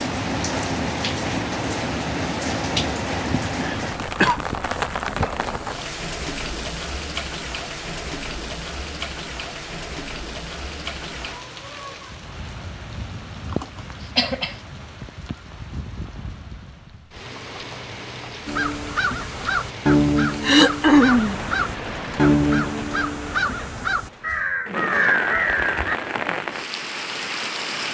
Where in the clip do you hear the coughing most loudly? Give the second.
21 s.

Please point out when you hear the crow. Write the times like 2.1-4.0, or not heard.
18.4-25.9.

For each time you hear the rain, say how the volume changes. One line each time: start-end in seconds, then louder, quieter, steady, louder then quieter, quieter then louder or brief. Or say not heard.
0.0-27.8 quieter then louder.